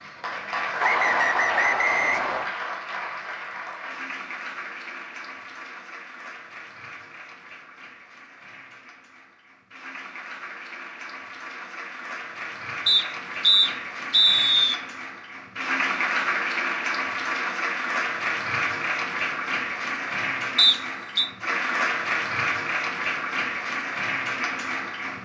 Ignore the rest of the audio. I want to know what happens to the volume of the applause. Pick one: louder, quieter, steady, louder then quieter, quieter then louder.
quieter then louder.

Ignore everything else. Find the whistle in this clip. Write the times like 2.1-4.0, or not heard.
0.8-2.5, 12.8-14.8, 20.6-21.3.